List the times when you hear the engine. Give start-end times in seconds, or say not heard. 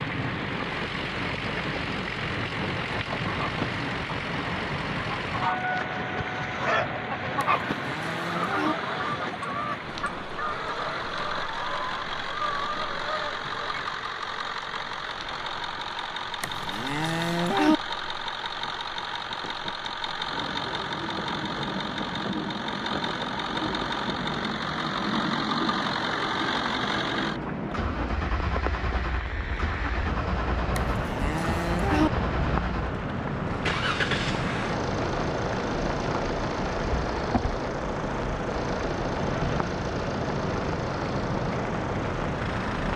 0.0-42.9.